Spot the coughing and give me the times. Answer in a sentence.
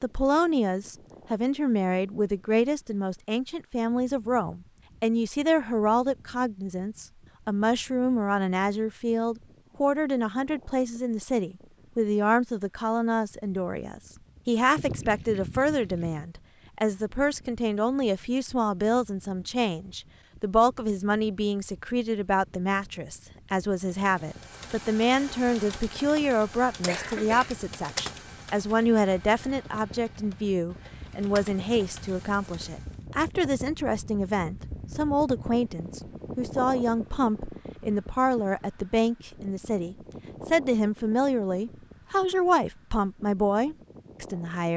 The coughing can be heard from 26.9 to 27.6 s.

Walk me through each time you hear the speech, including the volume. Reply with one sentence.
The speech can be heard from 0.0 to 44.7 s, at a steady volume.